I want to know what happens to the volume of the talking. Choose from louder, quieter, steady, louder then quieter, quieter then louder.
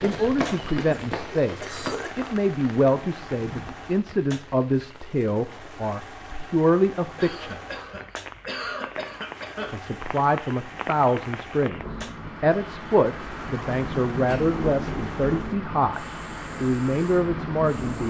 steady.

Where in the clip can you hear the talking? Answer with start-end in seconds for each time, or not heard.
0.0-7.5, 9.7-18.0.